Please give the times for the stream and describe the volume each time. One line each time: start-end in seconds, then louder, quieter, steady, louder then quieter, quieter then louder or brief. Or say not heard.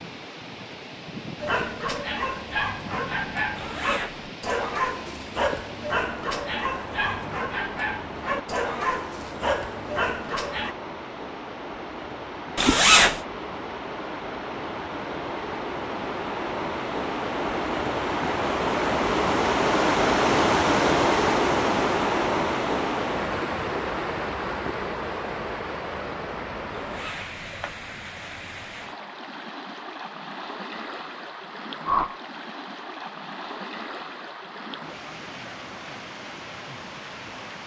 0.0-37.6 louder then quieter.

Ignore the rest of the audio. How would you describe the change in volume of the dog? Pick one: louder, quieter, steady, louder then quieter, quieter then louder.
steady.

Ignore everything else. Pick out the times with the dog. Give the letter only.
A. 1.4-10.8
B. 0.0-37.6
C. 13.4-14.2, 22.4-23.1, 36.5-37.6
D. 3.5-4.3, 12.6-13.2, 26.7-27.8
A.